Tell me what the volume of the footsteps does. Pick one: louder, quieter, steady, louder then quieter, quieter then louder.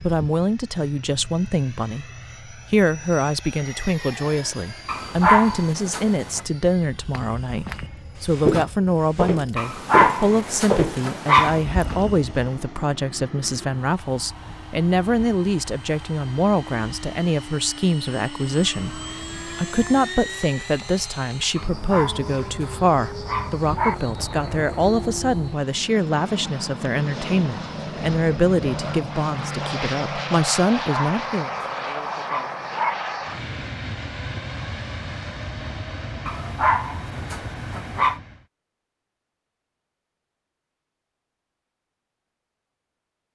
louder then quieter.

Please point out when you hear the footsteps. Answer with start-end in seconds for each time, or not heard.
7.0-12.3.